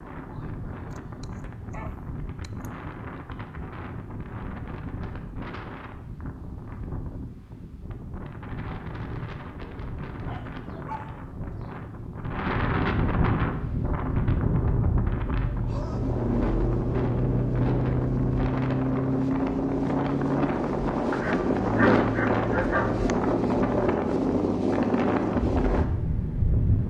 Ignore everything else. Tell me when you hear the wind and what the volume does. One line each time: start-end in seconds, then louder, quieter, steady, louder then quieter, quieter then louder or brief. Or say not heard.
0.0-26.8 louder.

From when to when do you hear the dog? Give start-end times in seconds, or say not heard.
0.9-2.7, 10.2-11.8, 21.1-23.1.